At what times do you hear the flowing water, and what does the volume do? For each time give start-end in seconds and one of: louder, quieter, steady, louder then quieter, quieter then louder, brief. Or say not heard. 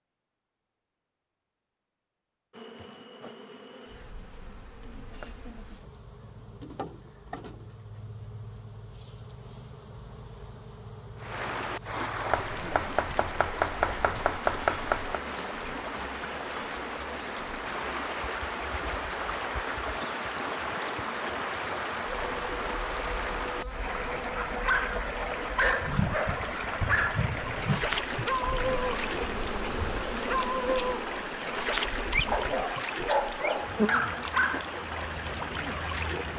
11.2-36.3 steady.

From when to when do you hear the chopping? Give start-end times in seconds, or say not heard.
12.3-15.2.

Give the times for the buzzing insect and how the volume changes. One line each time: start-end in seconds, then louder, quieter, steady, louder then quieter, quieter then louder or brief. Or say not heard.
2.5-36.3 louder.